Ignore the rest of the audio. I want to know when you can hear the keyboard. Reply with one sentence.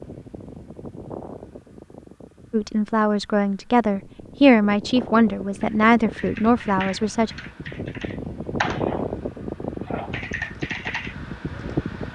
You can hear the keyboard from 5.6 to 9.1 s and from 9.8 to 11.8 s.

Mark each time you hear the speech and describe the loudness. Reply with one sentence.
The speech can be heard from 2.5 to 7.3 s, getting louder then quieter.